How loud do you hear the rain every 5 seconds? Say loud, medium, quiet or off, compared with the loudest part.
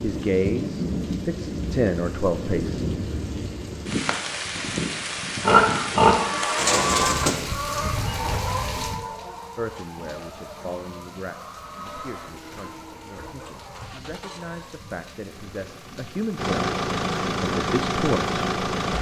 loud, loud, quiet, quiet.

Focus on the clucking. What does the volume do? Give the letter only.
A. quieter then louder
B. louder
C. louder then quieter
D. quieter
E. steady
D.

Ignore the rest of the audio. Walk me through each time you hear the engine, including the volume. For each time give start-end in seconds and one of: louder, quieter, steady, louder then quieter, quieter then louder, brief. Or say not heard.
12.2-18.9 louder.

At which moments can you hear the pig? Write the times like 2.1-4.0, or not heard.
5.4-6.5.